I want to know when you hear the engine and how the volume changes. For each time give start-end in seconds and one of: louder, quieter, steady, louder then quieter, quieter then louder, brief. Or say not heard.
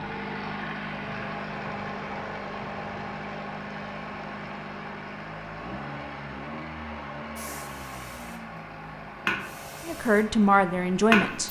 0.0-11.4 quieter.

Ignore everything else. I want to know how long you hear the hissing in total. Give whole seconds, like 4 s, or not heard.
4 s.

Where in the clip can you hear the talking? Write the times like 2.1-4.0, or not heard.
9.8-11.4.